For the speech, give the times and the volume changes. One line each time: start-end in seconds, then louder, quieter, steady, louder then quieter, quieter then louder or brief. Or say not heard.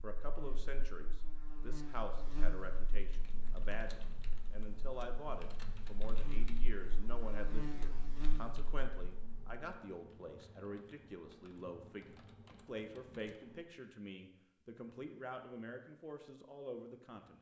0.0-17.3 steady.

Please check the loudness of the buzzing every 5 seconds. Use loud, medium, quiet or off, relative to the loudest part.
loud, loud, off, off.